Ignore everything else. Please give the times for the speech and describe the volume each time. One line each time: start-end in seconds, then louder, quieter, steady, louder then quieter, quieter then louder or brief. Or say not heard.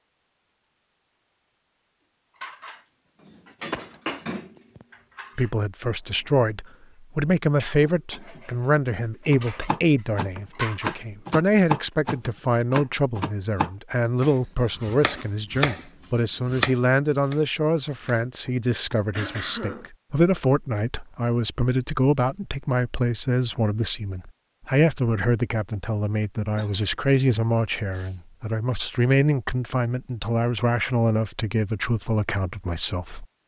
5.3-33.4 steady.